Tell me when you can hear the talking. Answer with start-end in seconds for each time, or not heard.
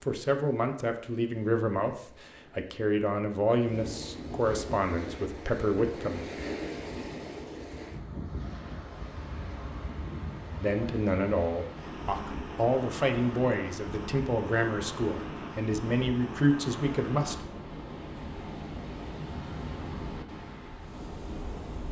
0.0-6.3, 10.6-17.4.